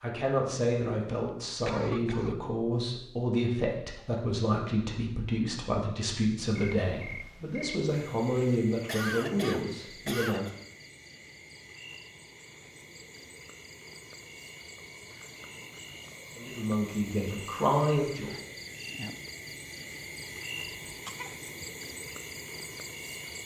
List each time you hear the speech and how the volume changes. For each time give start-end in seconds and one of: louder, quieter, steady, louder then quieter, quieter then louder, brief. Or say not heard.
0.0-10.5 steady
16.4-18.4 brief.